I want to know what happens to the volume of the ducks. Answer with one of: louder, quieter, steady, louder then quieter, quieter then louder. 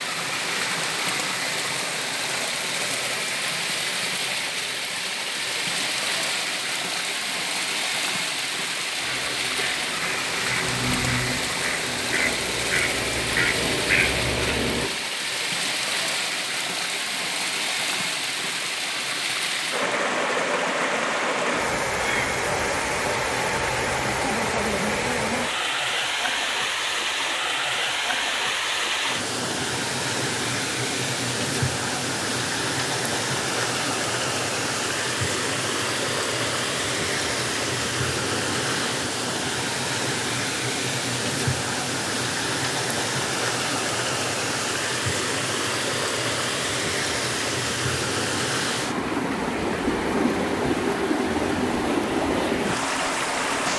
louder.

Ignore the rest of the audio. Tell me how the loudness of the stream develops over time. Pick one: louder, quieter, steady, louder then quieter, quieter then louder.
steady.